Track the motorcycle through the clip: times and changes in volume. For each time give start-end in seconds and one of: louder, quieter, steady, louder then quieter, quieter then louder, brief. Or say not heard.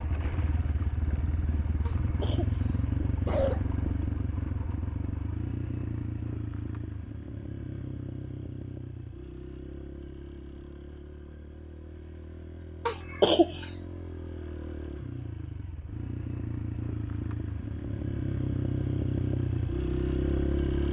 0.0-20.8 quieter then louder.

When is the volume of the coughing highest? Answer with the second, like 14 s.
13 s.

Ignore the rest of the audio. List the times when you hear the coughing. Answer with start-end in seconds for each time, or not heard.
1.9-3.6, 12.8-13.7.